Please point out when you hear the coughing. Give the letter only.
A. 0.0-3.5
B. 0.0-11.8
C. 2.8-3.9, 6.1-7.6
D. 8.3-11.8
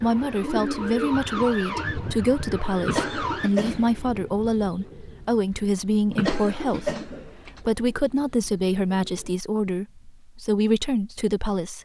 C.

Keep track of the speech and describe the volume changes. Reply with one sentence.
The loudness of the speech stays about the same.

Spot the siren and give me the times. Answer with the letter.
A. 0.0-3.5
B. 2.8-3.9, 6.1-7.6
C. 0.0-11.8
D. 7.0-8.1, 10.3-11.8
A.